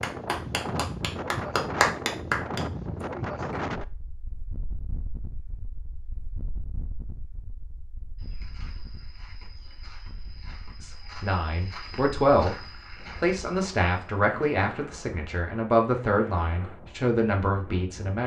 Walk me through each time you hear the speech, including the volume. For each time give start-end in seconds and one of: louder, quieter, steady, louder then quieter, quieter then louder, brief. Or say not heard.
10.8-18.2 steady.